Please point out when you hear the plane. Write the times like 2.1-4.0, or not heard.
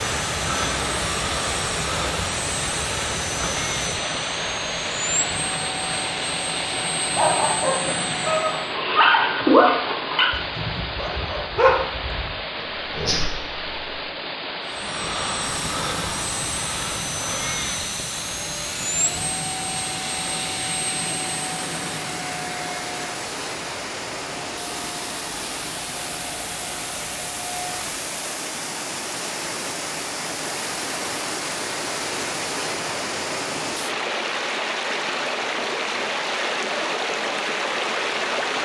0.0-8.8, 14.7-28.1.